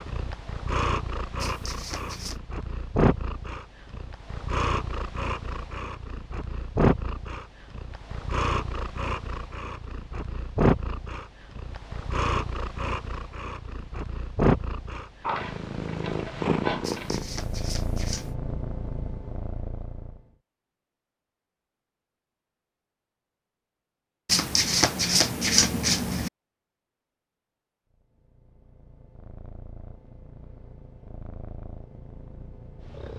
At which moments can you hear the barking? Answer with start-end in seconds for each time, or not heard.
not heard.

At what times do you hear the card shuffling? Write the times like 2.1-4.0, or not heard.
1.4-2.4, 16.8-18.4, 24.2-26.3.